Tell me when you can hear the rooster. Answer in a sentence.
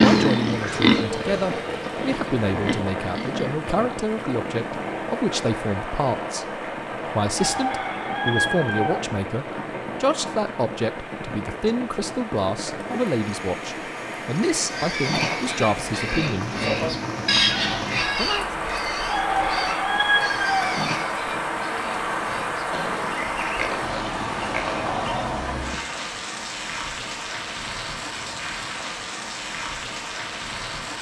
The rooster can be heard from 7.3 to 9.1 s and from 19.1 to 20.8 s.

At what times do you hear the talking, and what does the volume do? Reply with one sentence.
You can hear the talking from 0.0 to 16.5 s, at a steady volume; and briefly from 18.1 to 18.6 s.